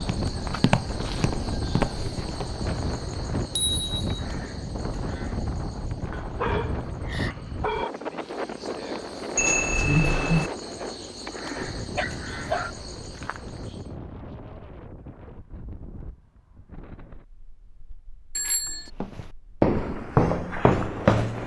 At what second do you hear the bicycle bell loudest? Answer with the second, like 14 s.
10 s.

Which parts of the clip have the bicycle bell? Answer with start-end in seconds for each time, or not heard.
3.4-4.2, 9.3-10.5, 18.4-18.9.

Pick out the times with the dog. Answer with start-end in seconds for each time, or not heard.
6.1-7.9, 11.9-12.7.